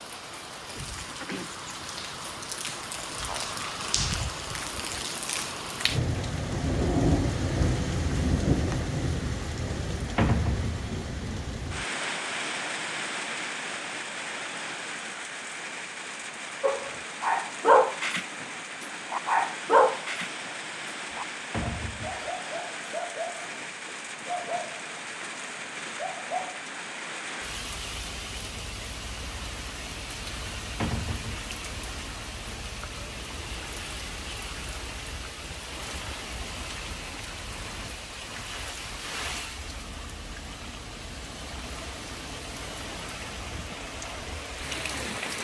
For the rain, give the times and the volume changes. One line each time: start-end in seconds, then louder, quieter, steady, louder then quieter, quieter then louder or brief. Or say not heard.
0.0-45.3 quieter.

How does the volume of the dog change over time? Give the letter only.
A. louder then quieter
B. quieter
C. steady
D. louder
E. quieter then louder
B.